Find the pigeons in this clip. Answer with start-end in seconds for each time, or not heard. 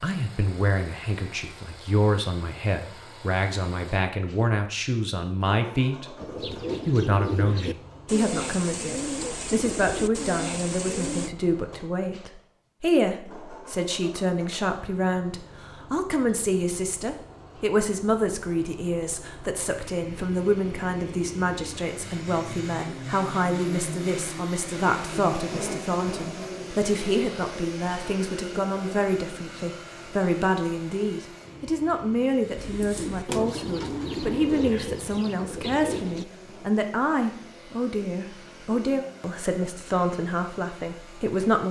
6.2-11.3, 32.5-36.2.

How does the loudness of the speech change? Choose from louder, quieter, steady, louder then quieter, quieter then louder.
steady.